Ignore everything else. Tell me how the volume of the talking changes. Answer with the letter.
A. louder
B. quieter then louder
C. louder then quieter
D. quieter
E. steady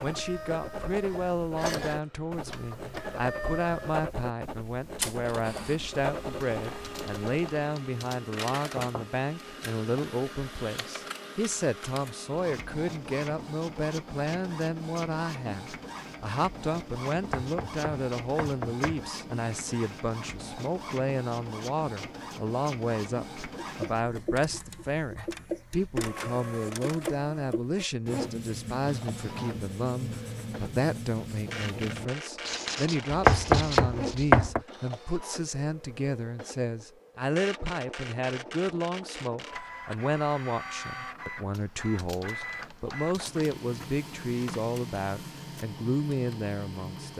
E.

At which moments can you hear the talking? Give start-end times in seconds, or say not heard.
0.0-47.1.